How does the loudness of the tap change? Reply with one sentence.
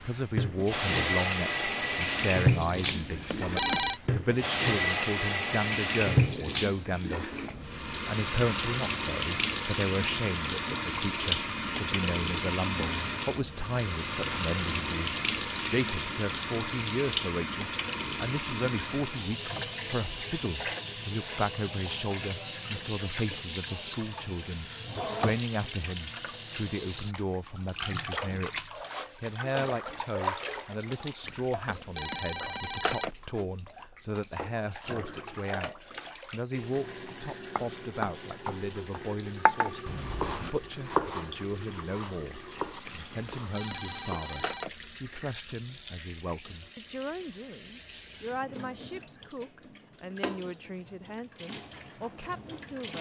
The volume of the tap goes down.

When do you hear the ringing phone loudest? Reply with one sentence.
The loudest moment of the ringing phone is at 4 seconds.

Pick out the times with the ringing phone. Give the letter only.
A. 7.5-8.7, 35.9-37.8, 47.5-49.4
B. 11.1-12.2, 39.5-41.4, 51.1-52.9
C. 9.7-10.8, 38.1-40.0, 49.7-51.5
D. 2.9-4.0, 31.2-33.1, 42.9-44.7
D.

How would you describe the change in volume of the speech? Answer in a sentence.
The loudness of the speech goes down.